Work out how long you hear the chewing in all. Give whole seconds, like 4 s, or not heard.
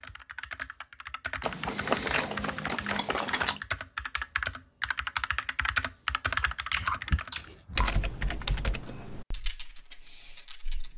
4 s.